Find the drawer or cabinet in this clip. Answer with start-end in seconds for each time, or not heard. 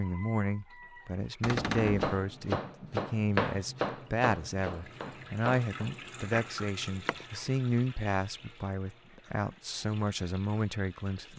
1.4-2.1.